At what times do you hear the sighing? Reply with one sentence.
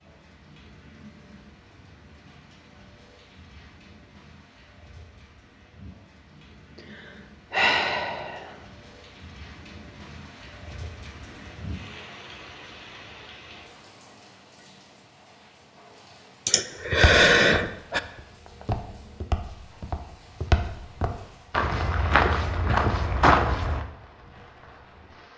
The sighing can be heard from 6.8 to 8.6 s and from 16.4 to 18.0 s.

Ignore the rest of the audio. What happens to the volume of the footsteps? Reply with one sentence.
The loudness of the footsteps goes up.